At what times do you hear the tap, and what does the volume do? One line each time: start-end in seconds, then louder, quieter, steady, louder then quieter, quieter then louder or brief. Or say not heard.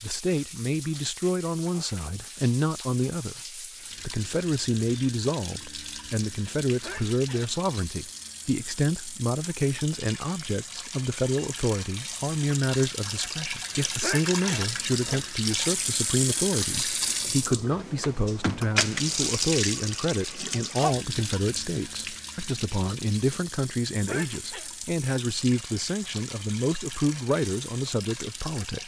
0.0-28.8 louder then quieter.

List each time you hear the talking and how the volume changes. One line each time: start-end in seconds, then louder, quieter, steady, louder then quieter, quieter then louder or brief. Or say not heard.
0.0-28.8 steady.